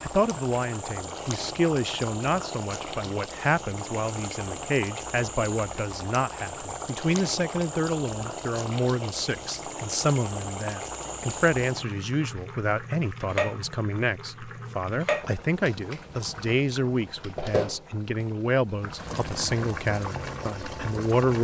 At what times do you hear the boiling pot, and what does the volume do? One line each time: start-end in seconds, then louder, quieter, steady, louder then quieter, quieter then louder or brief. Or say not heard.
0.0-21.3 steady.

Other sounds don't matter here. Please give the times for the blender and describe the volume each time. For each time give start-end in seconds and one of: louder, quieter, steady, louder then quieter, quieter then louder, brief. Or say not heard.
not heard.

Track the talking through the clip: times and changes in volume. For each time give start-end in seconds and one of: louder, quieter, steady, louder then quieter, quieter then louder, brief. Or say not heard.
0.0-21.3 steady.